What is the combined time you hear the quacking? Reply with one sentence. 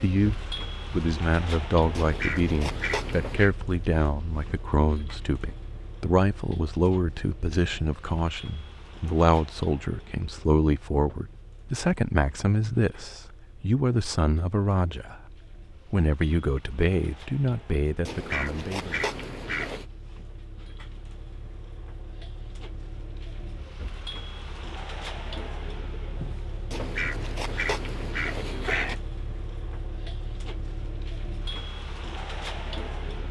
The quacking can be heard for 6 seconds in total.